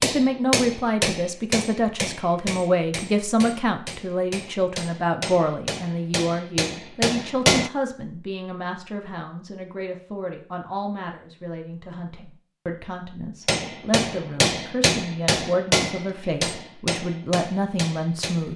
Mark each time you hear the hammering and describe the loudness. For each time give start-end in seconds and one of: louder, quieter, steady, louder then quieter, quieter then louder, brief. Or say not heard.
0.0-7.7 quieter then louder
13.4-18.5 quieter.